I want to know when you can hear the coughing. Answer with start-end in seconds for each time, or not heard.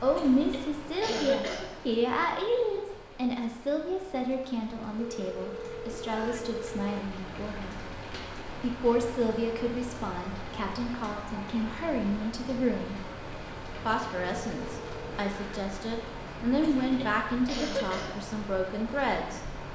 0.1-1.6, 16.6-18.1.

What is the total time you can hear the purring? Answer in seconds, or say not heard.
not heard.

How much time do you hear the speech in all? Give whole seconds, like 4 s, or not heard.
18 s.